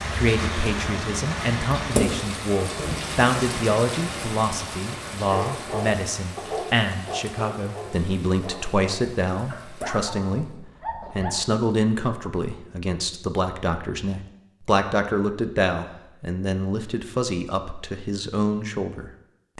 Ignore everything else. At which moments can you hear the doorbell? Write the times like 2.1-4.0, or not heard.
not heard.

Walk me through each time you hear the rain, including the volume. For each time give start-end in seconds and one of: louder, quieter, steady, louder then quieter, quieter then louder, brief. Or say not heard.
0.0-10.6 quieter.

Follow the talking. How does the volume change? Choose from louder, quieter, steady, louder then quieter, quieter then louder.
steady.